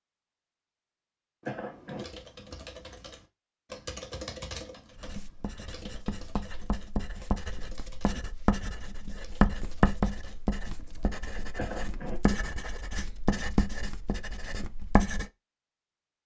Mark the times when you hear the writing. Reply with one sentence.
You can hear the writing from 4.9 to 15.3 s.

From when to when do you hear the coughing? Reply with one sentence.
The coughing can be heard from 1.4 to 2.0 s and from 11.6 to 12.2 s.